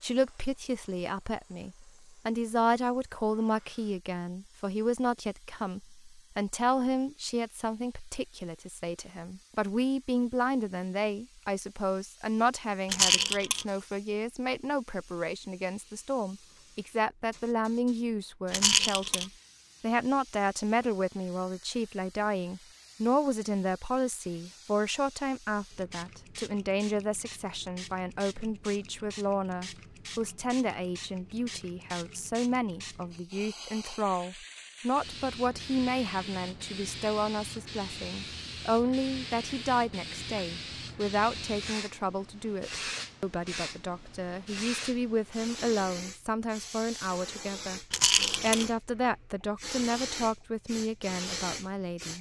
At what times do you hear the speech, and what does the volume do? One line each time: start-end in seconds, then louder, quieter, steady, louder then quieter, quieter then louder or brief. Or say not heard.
0.0-52.1 steady.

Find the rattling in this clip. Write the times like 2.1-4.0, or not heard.
12.9-13.7, 18.5-19.2, 47.9-48.6.